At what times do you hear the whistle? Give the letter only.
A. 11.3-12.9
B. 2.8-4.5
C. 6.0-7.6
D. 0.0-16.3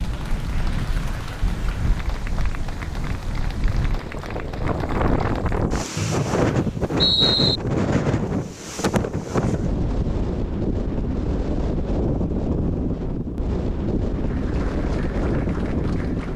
C.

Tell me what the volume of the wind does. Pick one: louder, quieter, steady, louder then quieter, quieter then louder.
louder.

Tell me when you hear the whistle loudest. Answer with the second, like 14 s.
7 s.